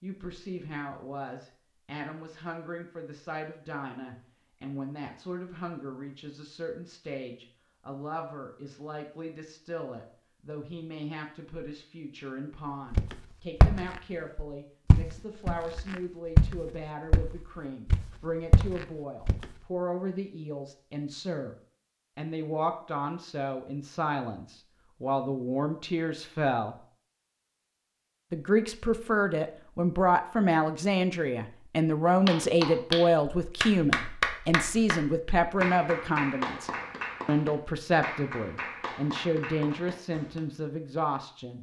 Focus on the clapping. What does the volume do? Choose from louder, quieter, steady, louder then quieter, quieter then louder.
quieter.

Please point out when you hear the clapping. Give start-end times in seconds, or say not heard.
32.0-40.4.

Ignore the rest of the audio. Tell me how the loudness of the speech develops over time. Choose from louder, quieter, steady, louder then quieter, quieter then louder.
louder.